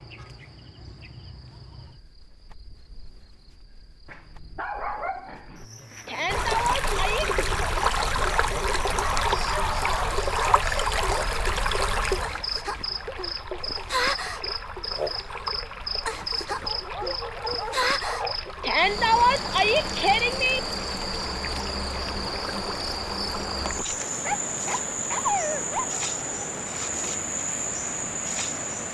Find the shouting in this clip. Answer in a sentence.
The shouting can be heard from 6.0 to 7.3 s and from 18.6 to 20.6 s.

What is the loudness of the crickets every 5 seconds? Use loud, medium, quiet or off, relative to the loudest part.
quiet, quiet, loud, loud, loud, loud.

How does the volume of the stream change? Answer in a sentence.
The volume of the stream goes down.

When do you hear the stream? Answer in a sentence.
You can hear the stream from 6.2 to 28.8 s.